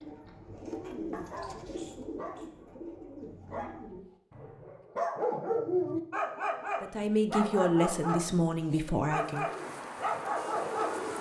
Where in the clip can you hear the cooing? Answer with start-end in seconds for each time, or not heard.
0.0-4.8, 9.2-11.1.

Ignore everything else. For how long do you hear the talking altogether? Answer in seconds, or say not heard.
3 s.